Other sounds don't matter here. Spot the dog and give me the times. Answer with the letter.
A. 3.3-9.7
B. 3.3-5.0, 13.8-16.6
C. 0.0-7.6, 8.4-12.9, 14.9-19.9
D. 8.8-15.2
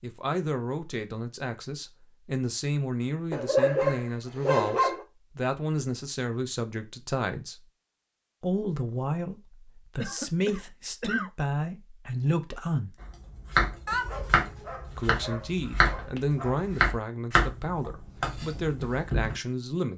B.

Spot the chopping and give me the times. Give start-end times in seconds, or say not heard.
13.0-19.4.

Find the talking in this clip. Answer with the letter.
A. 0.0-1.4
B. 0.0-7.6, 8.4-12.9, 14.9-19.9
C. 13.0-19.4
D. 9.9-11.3
B.